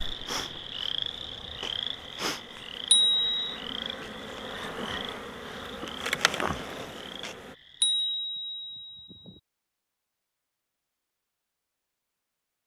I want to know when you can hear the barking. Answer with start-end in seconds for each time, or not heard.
not heard.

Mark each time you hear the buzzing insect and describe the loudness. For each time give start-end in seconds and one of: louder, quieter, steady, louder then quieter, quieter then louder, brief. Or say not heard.
0.0-7.5 louder.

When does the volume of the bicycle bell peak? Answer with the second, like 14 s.
3 s.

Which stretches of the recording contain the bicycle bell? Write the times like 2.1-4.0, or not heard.
2.9-3.5, 7.8-9.3.